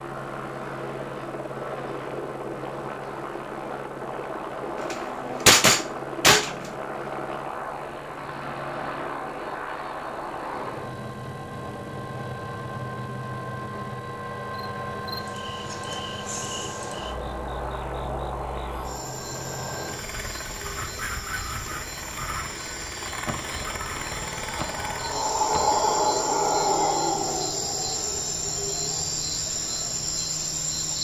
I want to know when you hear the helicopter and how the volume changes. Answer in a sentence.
The helicopter can be heard from 0.0 to 30.9 s, getting quieter.